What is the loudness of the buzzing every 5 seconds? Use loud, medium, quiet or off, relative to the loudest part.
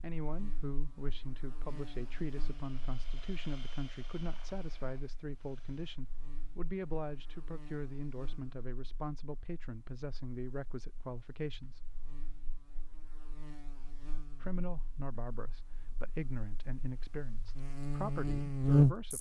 quiet, quiet, quiet, loud.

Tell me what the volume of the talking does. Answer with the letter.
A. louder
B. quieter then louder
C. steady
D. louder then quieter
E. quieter
C.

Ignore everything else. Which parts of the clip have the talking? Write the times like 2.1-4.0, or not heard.
0.0-11.8, 14.4-19.1.